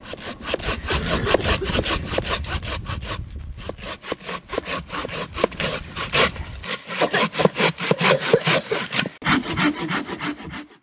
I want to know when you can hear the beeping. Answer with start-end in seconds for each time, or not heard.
not heard.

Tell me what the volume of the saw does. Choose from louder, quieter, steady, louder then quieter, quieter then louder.
quieter then louder.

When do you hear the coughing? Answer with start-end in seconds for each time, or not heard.
0.4-1.9, 7.0-8.8.